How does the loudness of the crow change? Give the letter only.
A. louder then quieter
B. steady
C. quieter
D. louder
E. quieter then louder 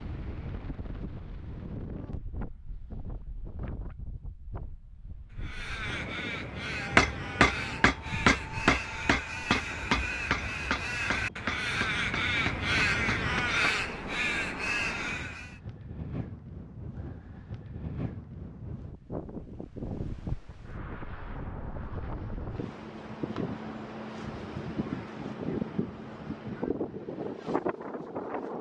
D.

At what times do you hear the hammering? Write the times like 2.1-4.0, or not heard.
6.8-13.9.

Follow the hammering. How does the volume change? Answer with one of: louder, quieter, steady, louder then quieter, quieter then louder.
quieter.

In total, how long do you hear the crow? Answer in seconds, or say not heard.
10 s.